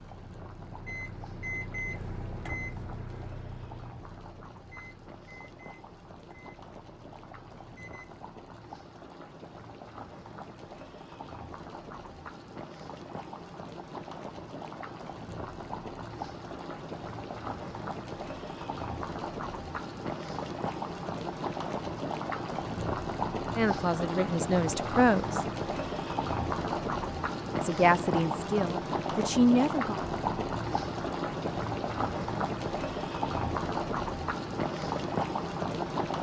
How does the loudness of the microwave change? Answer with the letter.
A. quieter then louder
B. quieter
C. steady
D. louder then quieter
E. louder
B.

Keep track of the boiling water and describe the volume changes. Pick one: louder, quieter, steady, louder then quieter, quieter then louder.
louder.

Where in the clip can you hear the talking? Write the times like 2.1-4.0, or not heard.
23.6-25.4, 27.6-29.9.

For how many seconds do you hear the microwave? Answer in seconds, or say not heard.
8 s.